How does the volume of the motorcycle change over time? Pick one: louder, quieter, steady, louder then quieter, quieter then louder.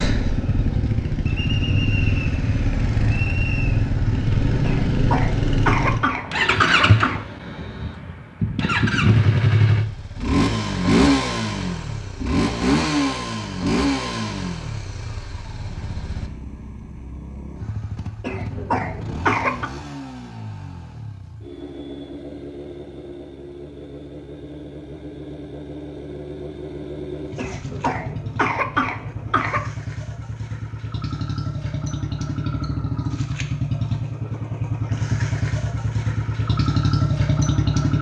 quieter then louder.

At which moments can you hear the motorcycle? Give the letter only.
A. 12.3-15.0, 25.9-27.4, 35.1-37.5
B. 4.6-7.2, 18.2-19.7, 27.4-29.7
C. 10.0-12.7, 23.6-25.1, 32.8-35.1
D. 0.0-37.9
D.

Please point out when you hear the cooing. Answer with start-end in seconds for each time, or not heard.
not heard.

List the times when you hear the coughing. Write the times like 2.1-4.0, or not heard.
4.6-7.2, 18.2-19.7, 27.4-29.7.